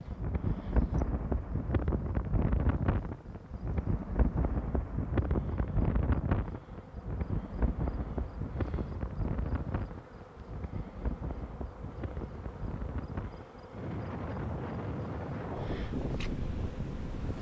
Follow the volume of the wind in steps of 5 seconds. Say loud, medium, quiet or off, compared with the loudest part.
loud, loud, medium, loud.